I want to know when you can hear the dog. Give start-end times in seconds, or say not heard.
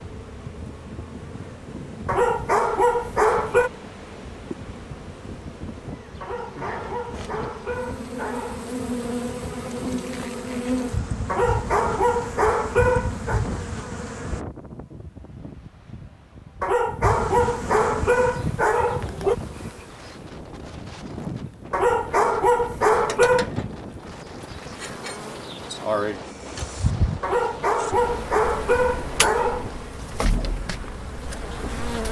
2.0-3.7, 6.2-8.8, 11.2-13.4, 16.6-19.4, 21.7-23.5, 27.2-29.8.